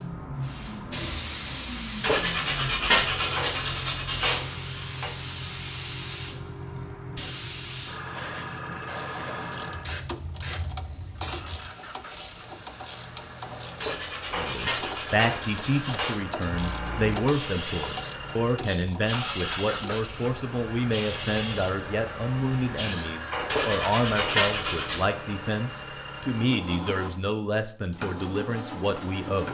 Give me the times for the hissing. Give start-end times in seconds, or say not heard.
0.0-23.1.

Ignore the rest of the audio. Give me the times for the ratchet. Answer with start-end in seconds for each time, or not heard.
8.7-20.2.